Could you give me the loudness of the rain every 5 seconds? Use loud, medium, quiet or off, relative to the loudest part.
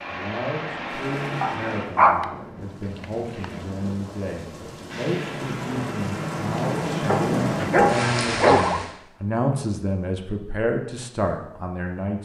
quiet, loud, off.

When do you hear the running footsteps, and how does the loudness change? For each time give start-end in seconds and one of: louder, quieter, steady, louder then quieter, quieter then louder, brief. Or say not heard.
not heard.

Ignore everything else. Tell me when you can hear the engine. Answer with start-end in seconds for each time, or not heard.
0.0-1.9.